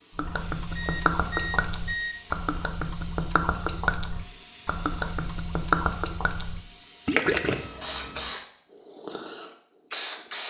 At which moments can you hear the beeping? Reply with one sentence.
The beeping can be heard from 0.7 to 2.3 s and from 7.5 to 8.3 s.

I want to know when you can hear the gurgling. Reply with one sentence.
You can hear the gurgling from 0.1 to 7.7 s.